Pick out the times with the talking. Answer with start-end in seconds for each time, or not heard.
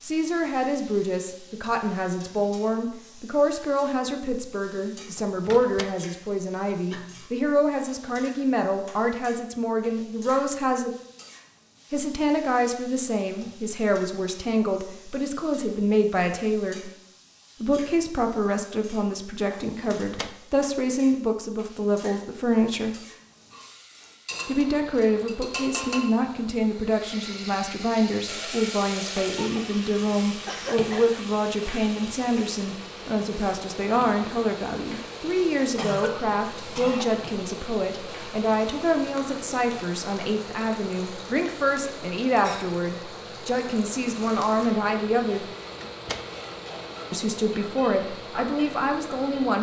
0.0-10.9, 11.9-16.9, 17.6-22.9, 24.4-45.5, 47.1-49.5.